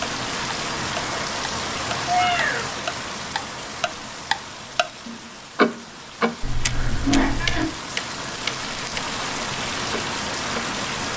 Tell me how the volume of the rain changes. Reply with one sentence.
The loudness of the rain goes down, then up.